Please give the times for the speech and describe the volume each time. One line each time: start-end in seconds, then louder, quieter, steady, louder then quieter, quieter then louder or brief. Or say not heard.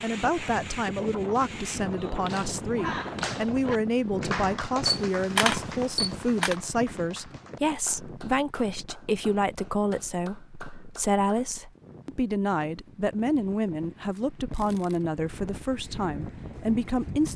0.0-17.3 steady.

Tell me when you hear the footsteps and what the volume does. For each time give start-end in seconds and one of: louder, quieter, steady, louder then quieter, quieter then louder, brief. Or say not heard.
not heard.